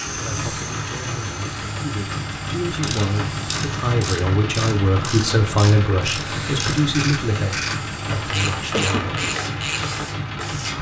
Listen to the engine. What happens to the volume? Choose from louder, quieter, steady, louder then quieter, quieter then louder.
steady.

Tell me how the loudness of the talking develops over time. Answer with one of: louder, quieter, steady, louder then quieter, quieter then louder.
louder then quieter.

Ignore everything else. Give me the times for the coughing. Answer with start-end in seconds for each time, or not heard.
8.7-9.2.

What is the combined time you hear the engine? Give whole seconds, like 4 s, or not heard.
11 s.